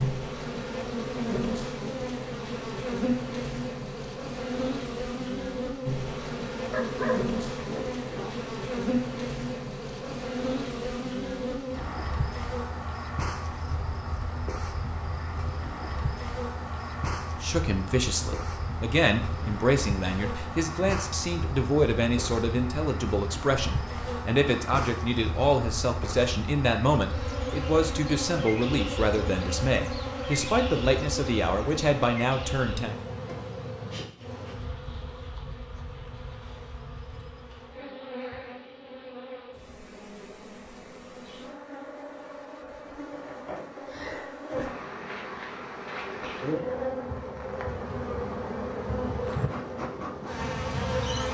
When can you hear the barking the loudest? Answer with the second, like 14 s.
7 s.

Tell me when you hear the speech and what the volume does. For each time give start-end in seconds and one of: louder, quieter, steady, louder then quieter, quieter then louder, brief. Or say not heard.
17.4-33.0 steady.